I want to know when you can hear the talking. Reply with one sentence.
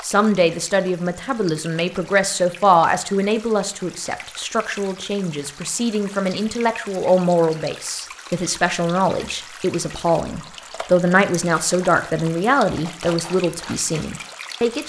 The talking can be heard from 0.0 to 14.8 s.